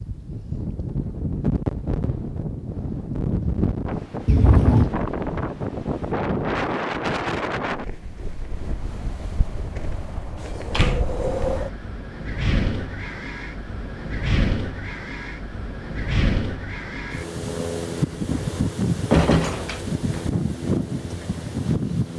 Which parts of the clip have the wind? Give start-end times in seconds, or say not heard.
0.0-22.1.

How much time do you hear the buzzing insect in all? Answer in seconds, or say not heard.
not heard.